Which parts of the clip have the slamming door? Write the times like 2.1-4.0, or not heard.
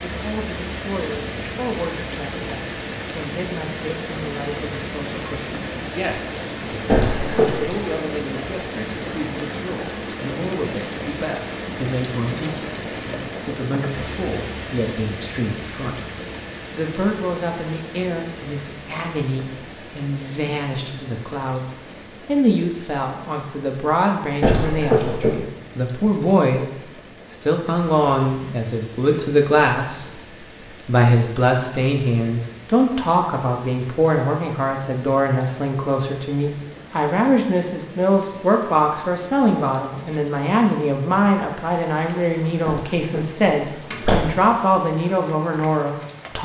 6.8-7.8, 24.4-25.4, 42.6-44.2.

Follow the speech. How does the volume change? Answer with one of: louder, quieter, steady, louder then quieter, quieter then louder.
louder.